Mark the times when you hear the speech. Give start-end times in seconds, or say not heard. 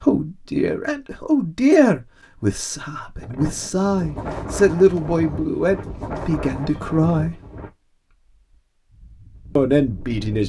0.0-7.3, 9.6-10.4.